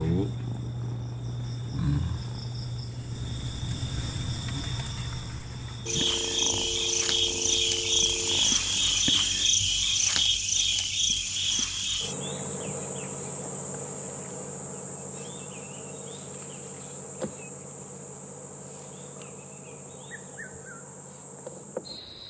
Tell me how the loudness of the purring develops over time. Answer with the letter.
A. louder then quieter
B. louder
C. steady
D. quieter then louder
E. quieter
E.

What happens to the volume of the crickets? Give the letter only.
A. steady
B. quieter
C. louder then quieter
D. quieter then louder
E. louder
C.